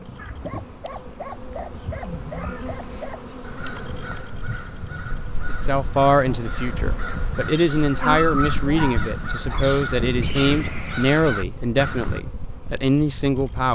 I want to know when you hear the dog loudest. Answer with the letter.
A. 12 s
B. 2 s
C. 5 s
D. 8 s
D.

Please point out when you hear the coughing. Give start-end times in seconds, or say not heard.
not heard.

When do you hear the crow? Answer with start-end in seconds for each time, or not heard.
0.1-12.2.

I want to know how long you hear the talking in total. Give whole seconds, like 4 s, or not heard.
8 s.